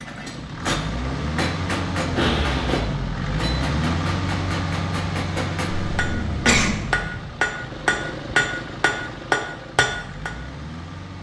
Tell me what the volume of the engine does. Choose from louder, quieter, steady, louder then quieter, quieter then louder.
quieter.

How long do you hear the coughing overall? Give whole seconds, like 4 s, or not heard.
2 s.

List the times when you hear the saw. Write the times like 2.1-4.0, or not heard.
not heard.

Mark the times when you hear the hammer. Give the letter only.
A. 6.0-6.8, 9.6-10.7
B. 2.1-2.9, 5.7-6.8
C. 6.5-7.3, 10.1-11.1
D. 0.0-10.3
D.